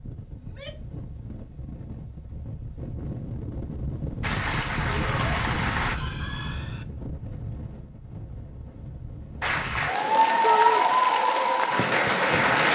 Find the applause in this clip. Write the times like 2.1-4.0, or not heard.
4.2-6.0, 9.4-12.7.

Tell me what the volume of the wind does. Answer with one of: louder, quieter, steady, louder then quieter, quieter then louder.
louder then quieter.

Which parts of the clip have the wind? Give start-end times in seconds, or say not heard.
0.0-9.9.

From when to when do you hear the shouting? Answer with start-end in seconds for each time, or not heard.
0.4-1.0, 4.8-6.8, 10.4-10.8.